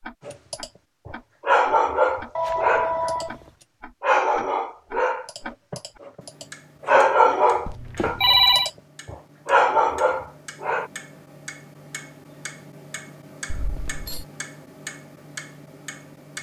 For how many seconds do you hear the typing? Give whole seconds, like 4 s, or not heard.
not heard.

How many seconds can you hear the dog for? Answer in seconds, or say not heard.
10 s.